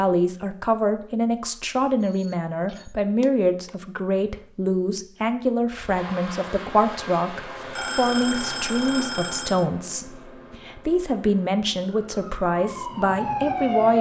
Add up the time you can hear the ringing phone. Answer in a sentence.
You can hear the ringing phone for 4 seconds altogether.